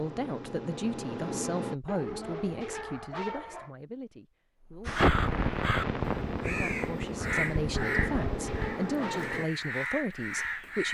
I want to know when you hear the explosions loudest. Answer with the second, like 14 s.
5 s.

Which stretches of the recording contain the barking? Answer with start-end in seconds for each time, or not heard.
1.9-3.7, 7.7-9.3.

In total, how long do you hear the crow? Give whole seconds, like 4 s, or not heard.
6 s.